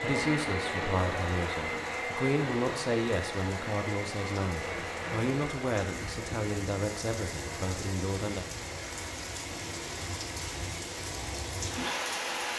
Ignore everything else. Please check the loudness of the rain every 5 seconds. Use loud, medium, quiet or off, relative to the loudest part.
quiet, medium, loud.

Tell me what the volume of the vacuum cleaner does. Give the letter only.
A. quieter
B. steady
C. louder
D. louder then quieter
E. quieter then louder
A.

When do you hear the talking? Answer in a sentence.
You can hear the talking from 0.0 to 8.4 s.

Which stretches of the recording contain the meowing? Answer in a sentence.
The meowing can't be heard in this clip.